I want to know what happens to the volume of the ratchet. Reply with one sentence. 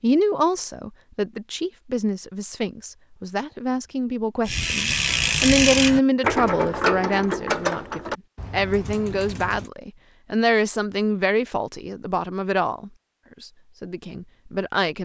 The loudness of the ratchet goes down.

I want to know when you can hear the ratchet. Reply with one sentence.
The ratchet can be heard from 4.5 to 9.7 s.